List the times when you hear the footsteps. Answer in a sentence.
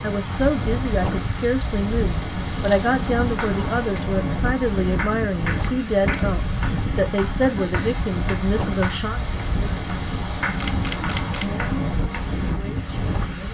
The footsteps can't be heard in this clip.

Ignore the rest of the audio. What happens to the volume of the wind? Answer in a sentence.
The loudness of the wind stays about the same.